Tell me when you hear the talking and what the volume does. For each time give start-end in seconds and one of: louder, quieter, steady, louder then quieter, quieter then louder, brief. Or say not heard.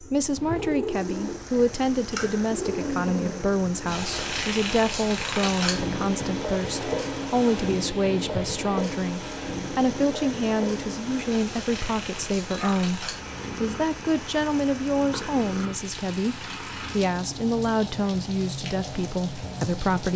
0.0-20.1 steady.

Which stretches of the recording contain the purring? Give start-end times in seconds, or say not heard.
0.0-20.1.